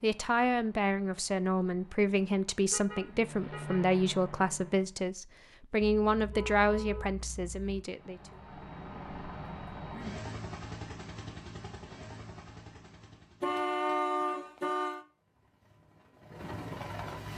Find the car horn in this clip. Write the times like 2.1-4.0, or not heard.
2.7-3.9, 5.8-7.8, 13.4-15.1.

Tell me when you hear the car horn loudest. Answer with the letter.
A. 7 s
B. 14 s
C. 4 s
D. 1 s
B.